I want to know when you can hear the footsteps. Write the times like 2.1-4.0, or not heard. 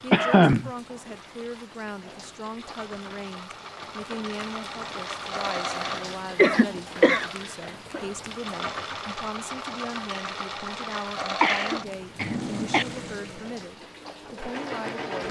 not heard.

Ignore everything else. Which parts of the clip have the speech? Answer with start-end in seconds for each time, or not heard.
0.0-15.2.